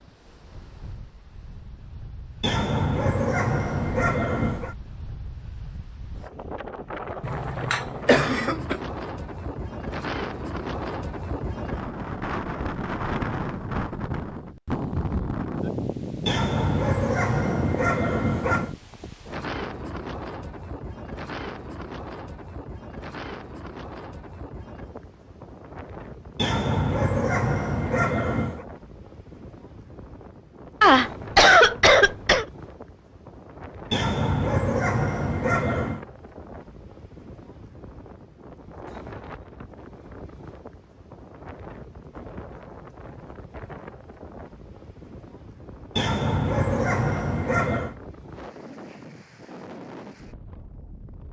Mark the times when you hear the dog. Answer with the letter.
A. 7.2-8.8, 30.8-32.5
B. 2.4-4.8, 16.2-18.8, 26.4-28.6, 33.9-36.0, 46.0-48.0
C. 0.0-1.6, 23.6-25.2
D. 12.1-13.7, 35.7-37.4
B.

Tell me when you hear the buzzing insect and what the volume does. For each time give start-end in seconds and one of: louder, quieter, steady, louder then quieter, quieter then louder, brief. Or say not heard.
not heard.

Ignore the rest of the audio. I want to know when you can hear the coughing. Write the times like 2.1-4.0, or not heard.
7.2-8.8, 30.8-32.5.